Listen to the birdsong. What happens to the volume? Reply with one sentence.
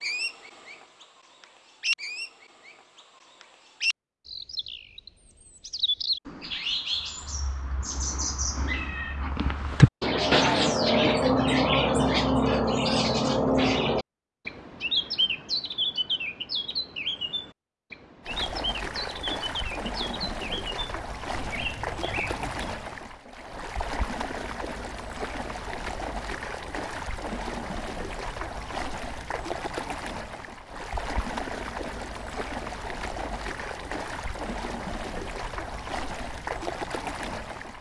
The volume of the birdsong goes up, then down.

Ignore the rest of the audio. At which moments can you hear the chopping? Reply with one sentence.
You can't hear the chopping here.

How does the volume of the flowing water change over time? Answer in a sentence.
The loudness of the flowing water stays about the same.